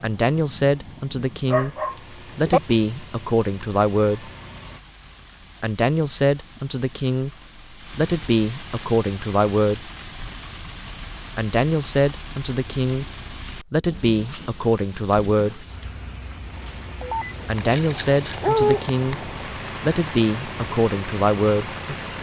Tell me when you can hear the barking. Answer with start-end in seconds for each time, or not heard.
1.5-2.6, 17.0-18.9.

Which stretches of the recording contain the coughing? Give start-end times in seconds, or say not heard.
not heard.